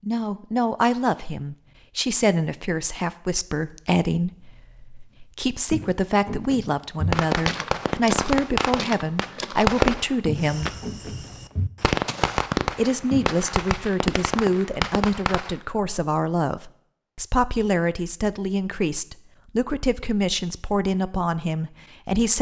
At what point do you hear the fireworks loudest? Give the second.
10 s.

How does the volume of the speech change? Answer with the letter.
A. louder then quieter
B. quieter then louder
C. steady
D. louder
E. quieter
C.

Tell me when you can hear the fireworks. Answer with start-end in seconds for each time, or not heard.
7.1-15.6.